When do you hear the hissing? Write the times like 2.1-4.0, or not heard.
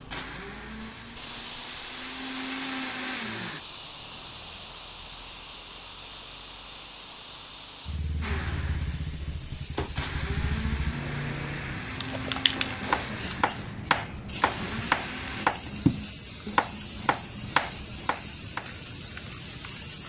0.0-20.0.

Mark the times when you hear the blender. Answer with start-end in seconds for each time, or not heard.
0.1-3.6, 8.2-15.5.